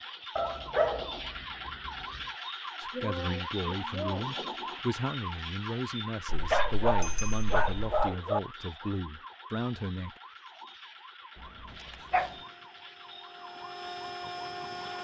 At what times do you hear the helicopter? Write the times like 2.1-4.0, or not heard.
12.1-14.9.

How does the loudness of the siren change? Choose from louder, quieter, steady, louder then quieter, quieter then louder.
quieter.